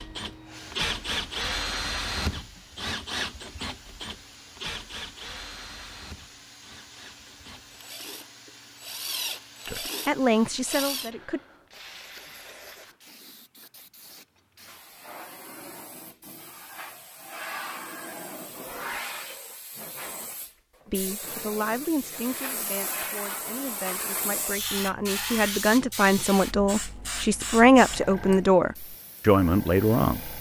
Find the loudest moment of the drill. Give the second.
1 s.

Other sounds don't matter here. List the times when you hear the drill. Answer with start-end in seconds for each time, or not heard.
0.0-11.1.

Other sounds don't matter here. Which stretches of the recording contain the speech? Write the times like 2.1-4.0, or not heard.
9.7-11.4, 20.9-30.3.